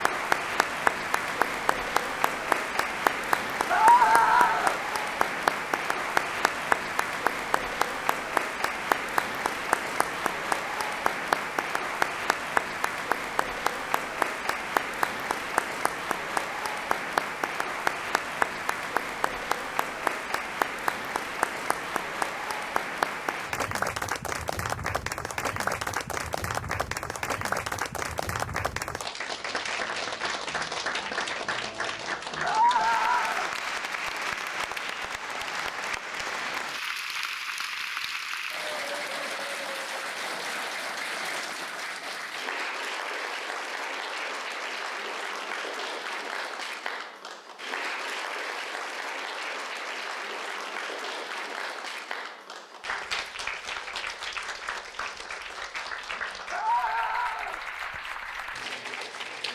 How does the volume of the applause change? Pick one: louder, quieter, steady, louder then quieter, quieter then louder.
quieter.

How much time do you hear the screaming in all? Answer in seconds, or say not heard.
3 s.